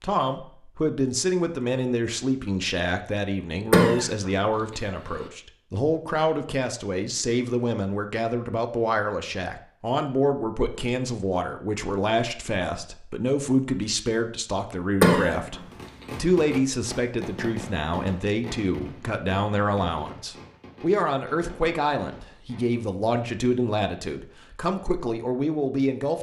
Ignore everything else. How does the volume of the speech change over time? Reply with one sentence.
The loudness of the speech stays about the same.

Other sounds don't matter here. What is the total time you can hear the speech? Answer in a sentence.
You can hear the speech for 26 seconds altogether.